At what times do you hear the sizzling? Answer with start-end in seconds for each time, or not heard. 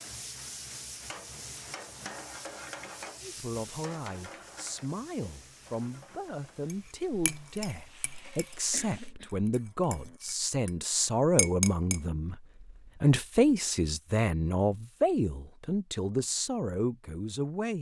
0.0-9.2.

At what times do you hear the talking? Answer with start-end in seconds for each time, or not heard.
3.2-17.7.